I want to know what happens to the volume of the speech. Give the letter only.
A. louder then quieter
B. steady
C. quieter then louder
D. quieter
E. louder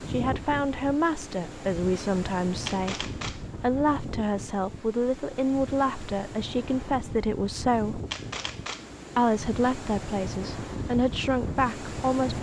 B.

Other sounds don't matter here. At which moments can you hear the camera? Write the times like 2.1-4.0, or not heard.
2.6-3.5, 8.1-8.9.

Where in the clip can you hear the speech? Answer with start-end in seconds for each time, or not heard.
0.0-8.0, 9.2-12.3.